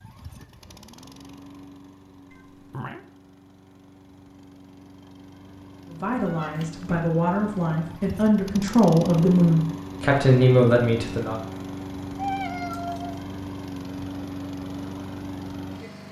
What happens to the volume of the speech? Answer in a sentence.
The volume of the speech goes up.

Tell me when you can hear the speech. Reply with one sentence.
The speech can be heard from 5.8 to 11.3 s.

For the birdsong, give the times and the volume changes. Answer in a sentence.
You can't hear the birdsong here.